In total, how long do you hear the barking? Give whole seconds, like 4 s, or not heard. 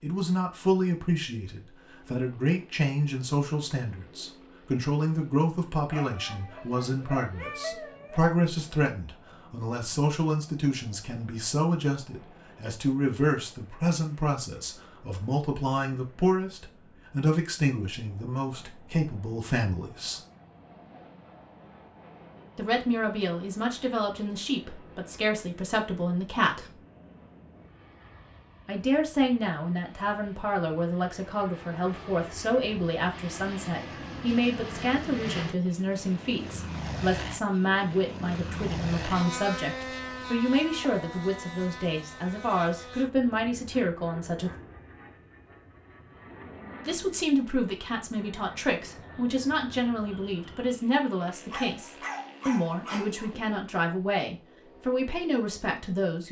4 s.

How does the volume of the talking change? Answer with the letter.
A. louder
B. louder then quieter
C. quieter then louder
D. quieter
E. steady
E.